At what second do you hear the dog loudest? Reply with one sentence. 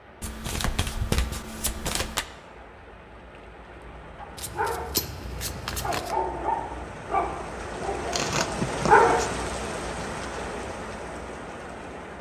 The loudest moment of the dog is at 9 seconds.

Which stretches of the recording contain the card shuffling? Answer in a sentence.
You can hear the card shuffling from 0.2 to 2.2 s, from 4.3 to 6.2 s and from 8.1 to 9.4 s.